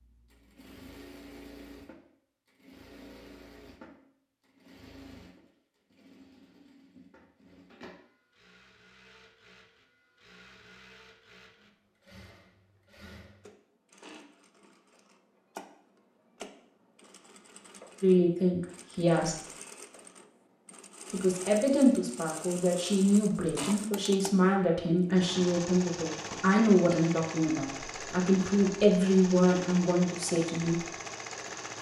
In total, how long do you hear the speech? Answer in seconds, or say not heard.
11 s.